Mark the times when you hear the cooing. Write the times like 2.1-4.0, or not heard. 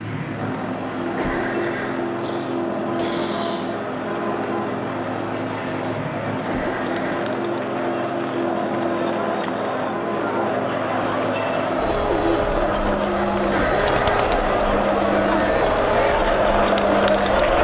10.9-16.8.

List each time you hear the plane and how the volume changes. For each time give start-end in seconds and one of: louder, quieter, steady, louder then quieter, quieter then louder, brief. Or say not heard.
0.0-17.5 steady.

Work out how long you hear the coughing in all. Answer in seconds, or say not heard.
4 s.